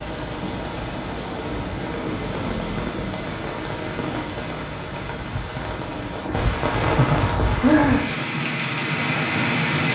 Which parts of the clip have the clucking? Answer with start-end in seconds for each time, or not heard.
not heard.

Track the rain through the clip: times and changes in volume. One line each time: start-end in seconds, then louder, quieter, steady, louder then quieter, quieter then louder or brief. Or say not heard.
0.0-9.9 louder.